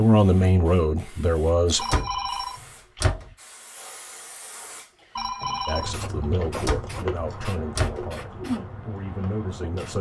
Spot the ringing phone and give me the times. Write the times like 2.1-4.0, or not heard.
1.8-3.1, 5.2-6.5.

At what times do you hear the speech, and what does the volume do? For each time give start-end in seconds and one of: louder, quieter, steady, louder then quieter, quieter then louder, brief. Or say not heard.
0.0-1.9 brief
5.7-9.9 quieter then louder.